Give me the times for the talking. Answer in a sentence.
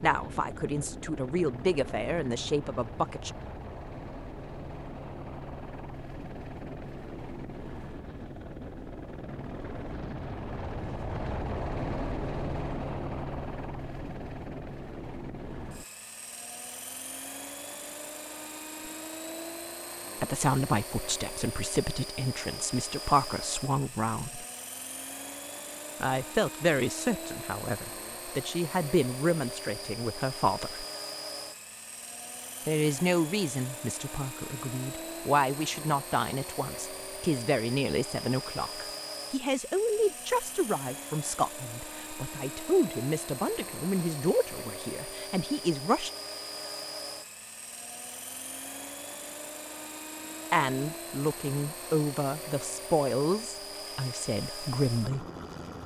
The talking can be heard from 0.0 to 3.3 s, from 20.2 to 24.4 s, from 26.0 to 30.9 s, from 32.6 to 46.1 s and from 50.5 to 55.2 s.